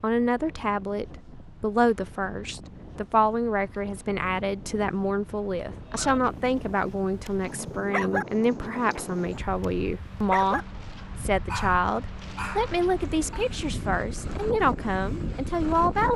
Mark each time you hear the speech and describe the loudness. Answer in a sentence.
You can hear the speech from 0.0 to 16.1 s, at a steady volume.